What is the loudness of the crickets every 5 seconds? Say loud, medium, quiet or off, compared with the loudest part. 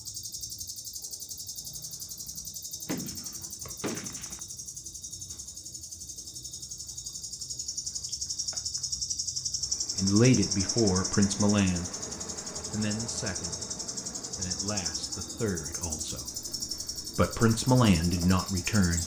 medium, loud, loud, loud.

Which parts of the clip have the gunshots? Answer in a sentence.
The gunshots can be heard from 2.9 to 4.4 s.